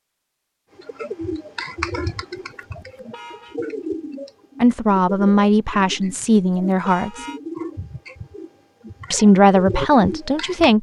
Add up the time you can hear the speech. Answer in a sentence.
You can hear the speech for 4 seconds altogether.